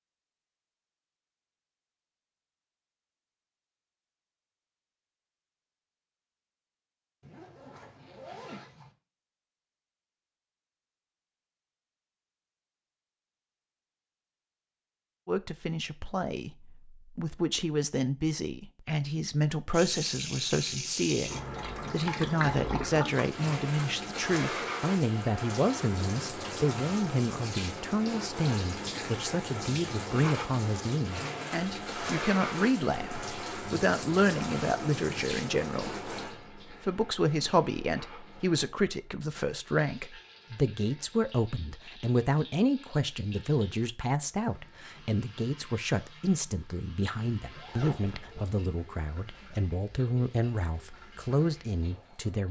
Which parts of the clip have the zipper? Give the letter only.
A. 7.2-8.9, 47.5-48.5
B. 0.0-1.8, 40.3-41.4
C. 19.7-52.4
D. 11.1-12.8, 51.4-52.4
A.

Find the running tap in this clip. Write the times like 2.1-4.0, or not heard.
19.7-52.4.